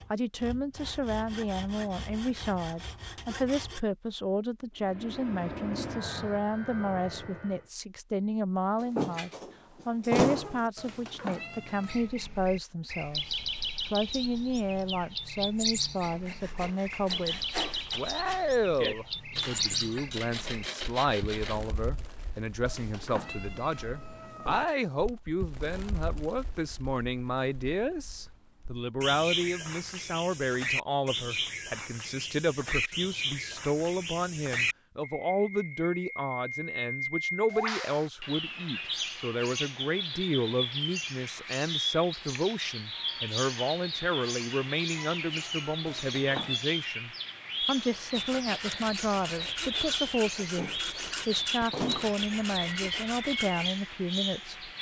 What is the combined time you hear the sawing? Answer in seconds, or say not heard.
15 s.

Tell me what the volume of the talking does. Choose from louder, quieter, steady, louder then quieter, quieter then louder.
steady.